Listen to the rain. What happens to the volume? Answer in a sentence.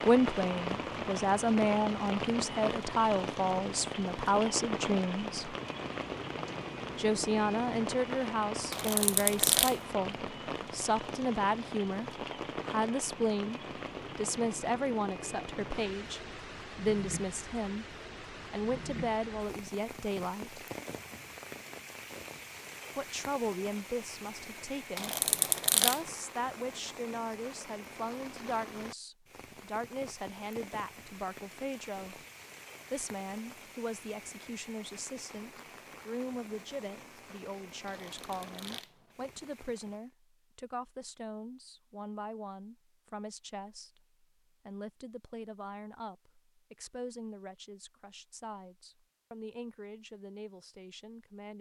The volume of the rain goes down.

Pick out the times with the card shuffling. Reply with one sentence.
The card shuffling can be heard from 8.7 to 9.8 s, from 24.9 to 26.1 s and from 37.9 to 39.1 s.